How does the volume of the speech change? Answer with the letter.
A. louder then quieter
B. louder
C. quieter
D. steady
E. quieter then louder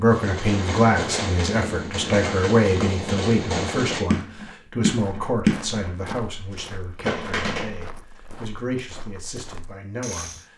C.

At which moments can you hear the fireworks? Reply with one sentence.
The fireworks can be heard from 0.1 to 7.8 s.